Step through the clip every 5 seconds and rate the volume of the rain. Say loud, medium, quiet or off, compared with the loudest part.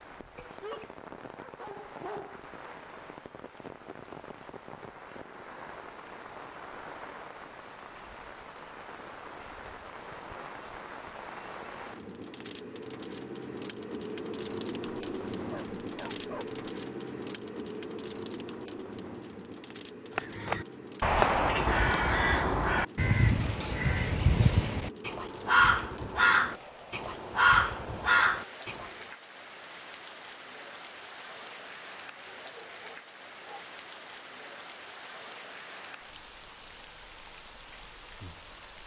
medium, medium, loud, loud, medium, medium, medium, medium.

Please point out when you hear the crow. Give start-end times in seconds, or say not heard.
20.1-28.9.